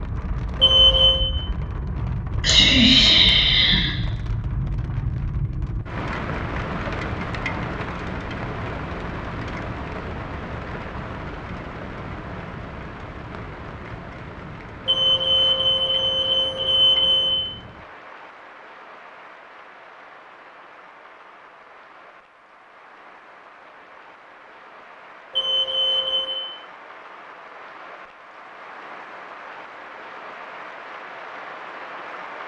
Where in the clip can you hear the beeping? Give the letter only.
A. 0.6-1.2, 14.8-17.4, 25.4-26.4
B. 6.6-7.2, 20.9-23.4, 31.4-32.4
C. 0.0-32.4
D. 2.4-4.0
A.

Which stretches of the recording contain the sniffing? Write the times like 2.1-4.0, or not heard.
2.4-4.0.